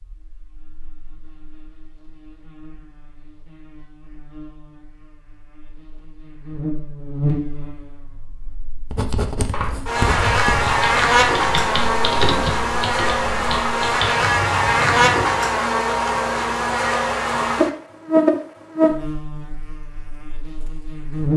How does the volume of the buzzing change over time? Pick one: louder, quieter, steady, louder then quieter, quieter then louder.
louder.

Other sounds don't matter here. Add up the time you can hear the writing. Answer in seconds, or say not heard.
2 s.